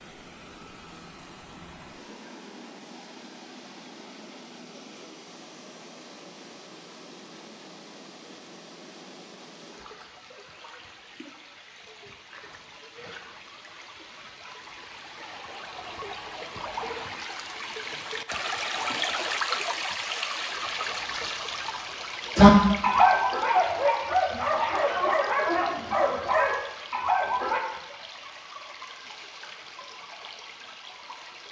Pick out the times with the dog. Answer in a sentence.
You can hear the dog from 22.4 to 27.6 s.